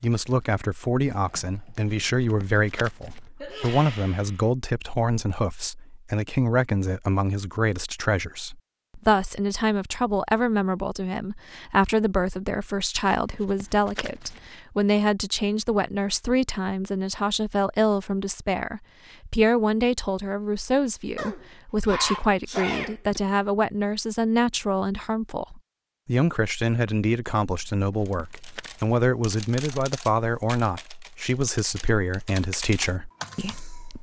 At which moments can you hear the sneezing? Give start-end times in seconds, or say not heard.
3.4-4.5, 21.1-23.2.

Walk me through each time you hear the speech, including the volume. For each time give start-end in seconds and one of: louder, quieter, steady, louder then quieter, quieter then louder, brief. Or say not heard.
0.0-33.9 steady.